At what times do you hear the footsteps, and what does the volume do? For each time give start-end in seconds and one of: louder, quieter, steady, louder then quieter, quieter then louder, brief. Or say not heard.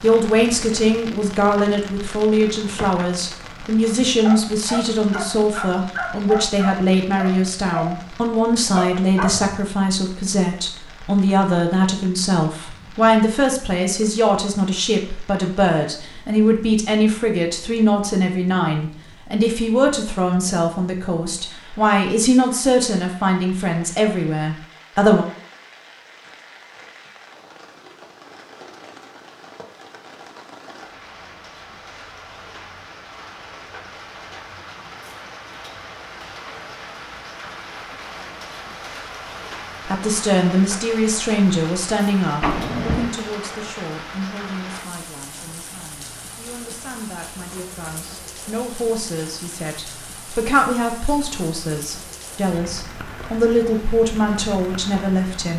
not heard.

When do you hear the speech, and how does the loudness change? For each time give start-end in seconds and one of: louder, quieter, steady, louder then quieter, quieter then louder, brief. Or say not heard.
0.0-25.2 steady
39.9-55.5 quieter then louder.